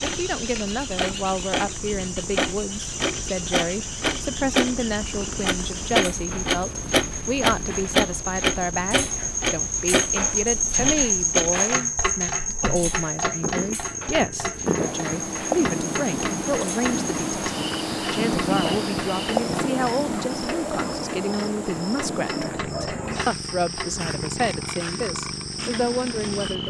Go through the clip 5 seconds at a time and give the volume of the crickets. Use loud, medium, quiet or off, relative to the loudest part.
medium, medium, loud, medium, medium, medium.